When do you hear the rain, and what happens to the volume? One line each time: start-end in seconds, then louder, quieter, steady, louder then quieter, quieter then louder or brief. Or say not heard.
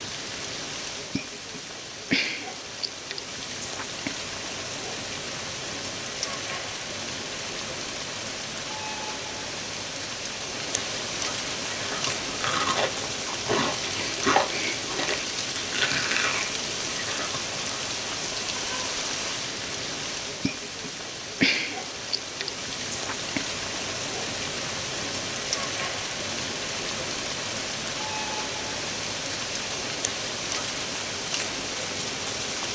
0.0-32.6 steady.